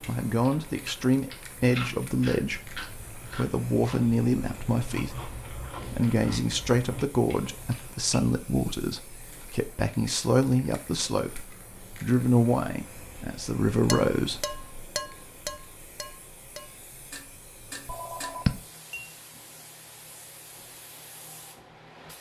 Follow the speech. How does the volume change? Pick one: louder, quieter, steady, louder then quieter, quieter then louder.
steady.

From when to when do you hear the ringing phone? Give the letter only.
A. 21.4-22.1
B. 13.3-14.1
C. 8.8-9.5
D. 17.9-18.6
D.